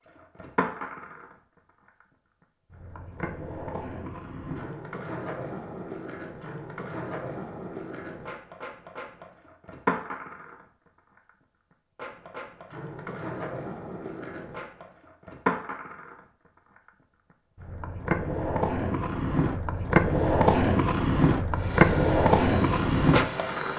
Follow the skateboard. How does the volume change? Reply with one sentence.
The volume of the skateboard goes up.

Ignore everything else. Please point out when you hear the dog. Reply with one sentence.
The dog can't be heard in this clip.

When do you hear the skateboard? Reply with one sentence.
The skateboard can be heard from 0.1 to 23.7 s.